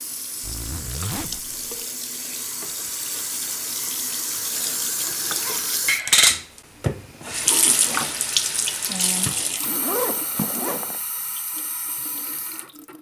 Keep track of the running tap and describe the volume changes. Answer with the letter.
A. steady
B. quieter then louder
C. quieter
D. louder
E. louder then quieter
E.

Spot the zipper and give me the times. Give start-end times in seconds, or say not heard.
0.4-1.8, 5.2-5.7, 9.7-11.0.